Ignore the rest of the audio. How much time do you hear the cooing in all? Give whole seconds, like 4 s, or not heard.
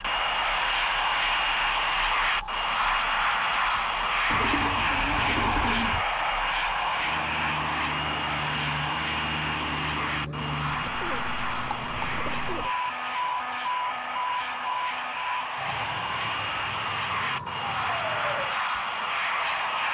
4 s.